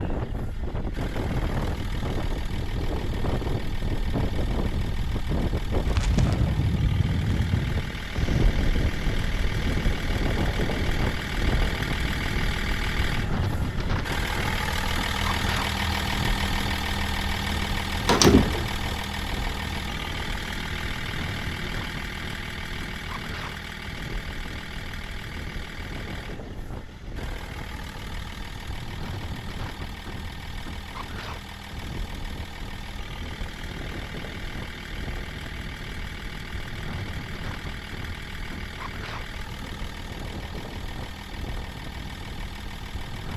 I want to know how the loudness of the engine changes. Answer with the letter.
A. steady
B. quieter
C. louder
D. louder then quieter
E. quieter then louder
D.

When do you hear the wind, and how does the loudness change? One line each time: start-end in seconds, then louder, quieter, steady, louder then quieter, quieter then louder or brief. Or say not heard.
0.0-43.3 quieter.